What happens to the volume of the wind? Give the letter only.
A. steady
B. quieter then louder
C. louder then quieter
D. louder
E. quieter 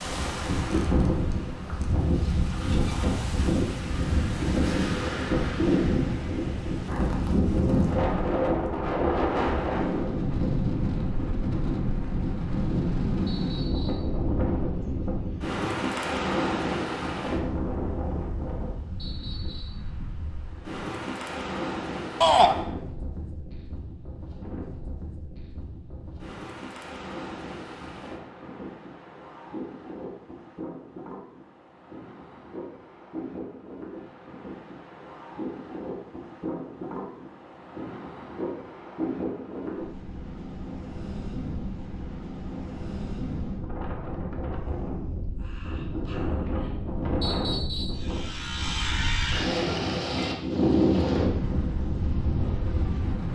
B.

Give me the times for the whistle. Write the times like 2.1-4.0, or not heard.
13.2-14.1, 18.9-19.9, 47.2-48.0.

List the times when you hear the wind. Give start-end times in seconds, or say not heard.
0.0-53.3.